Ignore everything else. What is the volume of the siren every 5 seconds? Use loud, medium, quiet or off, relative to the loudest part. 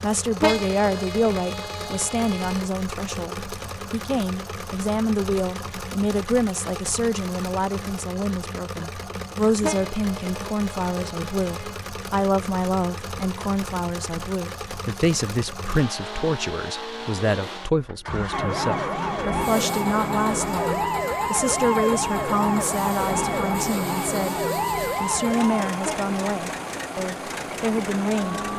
off, off, off, loud, loud, medium.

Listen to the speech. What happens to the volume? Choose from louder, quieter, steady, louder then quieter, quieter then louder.
steady.